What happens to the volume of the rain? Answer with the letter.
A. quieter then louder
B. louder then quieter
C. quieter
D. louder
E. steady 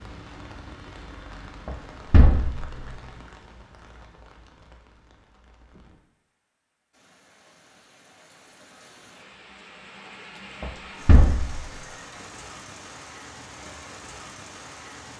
A.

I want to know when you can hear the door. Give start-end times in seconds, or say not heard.
1.6-3.0, 10.6-11.8.